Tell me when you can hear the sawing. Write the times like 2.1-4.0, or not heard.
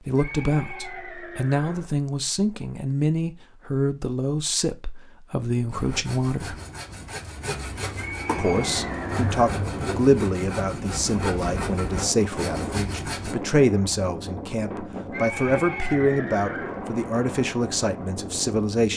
5.7-13.3.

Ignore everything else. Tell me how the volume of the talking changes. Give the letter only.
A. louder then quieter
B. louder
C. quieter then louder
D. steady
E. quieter
D.